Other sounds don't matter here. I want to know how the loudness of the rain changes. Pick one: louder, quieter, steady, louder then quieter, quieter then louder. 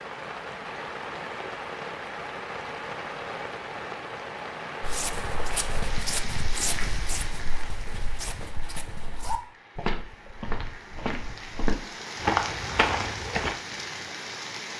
quieter then louder.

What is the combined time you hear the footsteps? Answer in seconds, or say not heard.
9 s.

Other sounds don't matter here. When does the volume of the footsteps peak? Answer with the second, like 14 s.
12 s.